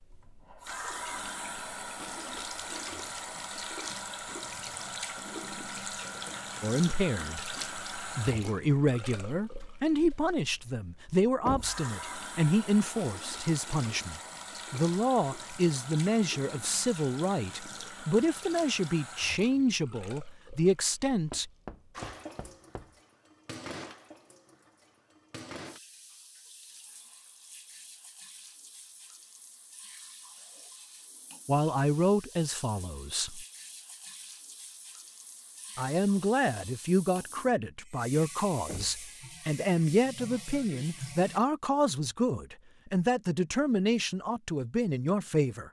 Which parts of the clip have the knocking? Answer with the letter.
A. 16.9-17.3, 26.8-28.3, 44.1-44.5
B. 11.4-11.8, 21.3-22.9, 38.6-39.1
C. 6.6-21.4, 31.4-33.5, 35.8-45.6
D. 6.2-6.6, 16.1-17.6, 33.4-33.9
B.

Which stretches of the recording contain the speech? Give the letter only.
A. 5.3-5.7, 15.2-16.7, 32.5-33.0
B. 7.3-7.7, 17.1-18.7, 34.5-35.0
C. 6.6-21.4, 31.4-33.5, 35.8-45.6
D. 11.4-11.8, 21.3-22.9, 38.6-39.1
C.